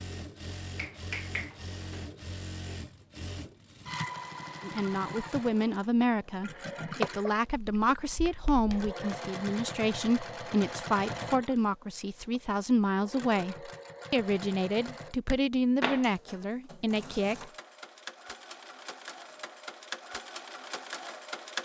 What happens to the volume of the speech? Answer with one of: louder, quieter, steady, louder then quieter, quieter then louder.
steady.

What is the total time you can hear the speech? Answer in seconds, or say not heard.
13 s.